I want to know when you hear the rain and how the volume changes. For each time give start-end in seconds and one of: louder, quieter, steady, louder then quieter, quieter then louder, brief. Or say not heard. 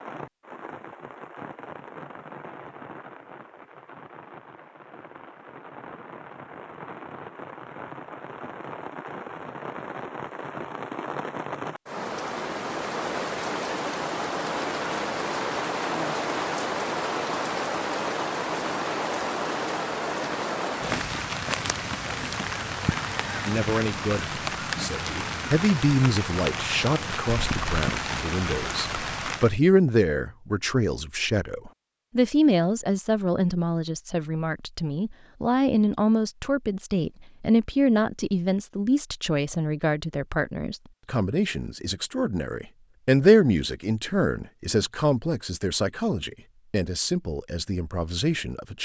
0.0-29.6 louder.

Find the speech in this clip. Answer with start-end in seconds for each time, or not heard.
23.4-48.7.